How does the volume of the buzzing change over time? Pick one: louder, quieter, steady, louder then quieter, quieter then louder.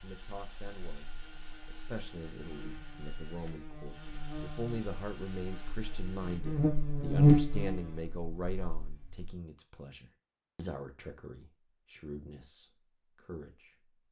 louder then quieter.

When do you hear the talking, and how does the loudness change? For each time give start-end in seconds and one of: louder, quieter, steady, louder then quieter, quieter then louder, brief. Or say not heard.
0.0-13.9 louder then quieter.